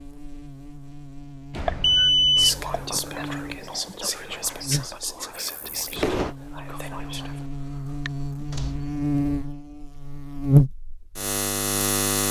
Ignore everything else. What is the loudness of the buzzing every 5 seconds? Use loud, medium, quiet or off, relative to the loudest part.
quiet, medium, loud.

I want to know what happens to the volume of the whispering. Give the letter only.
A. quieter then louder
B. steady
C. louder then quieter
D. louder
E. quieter
E.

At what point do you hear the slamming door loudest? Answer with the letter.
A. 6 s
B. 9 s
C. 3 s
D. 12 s
A.